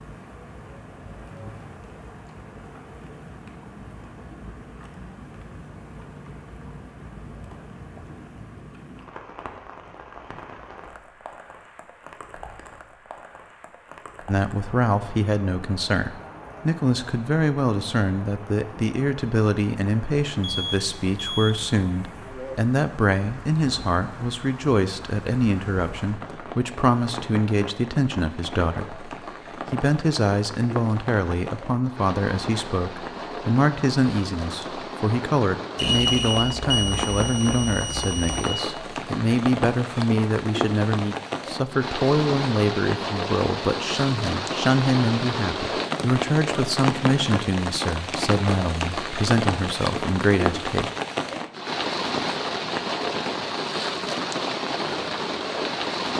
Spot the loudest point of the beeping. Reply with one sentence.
The volume of the beeping peaks at 36 seconds.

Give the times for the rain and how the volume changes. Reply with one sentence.
The rain can be heard from 0.0 to 56.1 s, getting louder.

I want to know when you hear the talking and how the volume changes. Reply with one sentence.
You can hear the talking from 14.2 to 50.9 s, at a steady volume.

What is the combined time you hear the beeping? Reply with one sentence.
The beeping can be heard for 4 seconds in total.